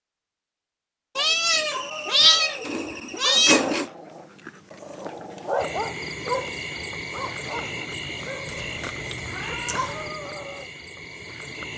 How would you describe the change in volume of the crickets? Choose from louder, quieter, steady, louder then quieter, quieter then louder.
quieter.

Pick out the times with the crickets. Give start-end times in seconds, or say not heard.
5.5-11.7.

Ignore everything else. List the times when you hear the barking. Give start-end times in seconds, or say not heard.
1.7-10.7.